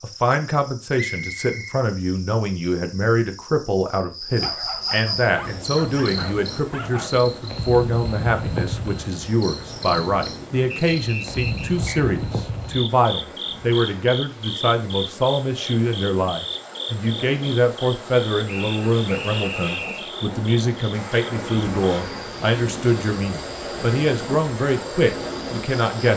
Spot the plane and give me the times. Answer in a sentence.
The plane can't be heard in this clip.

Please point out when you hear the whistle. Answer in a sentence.
The whistle can be heard from 1.2 to 1.8 s, from 10.7 to 12.0 s and from 18.4 to 20.1 s.